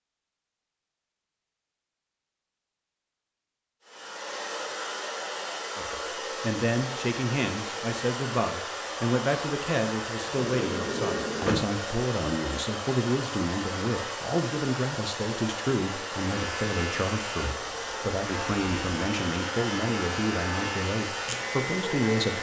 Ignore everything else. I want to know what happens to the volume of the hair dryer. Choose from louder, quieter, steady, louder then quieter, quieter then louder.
steady.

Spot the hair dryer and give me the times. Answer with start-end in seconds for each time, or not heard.
3.8-22.3.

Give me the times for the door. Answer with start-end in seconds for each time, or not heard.
10.2-11.8.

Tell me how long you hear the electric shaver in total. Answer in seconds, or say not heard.
6 s.